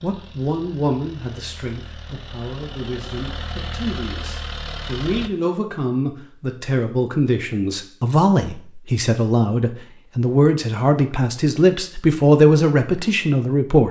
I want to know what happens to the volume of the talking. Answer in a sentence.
The volume of the talking goes up.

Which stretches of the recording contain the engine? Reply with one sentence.
The engine can be heard from 0.0 to 5.3 s.